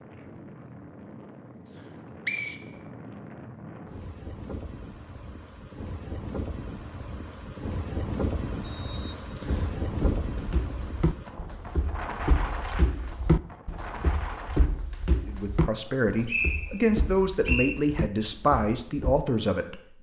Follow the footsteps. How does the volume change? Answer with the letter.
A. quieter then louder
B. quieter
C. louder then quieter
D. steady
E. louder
C.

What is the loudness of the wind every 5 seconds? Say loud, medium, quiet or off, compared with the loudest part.
medium, loud, loud, off.